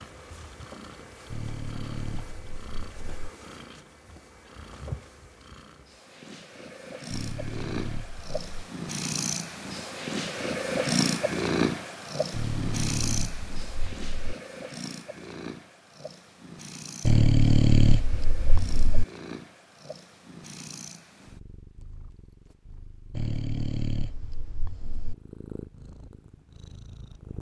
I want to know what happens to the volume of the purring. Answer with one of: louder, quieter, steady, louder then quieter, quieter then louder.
louder then quieter.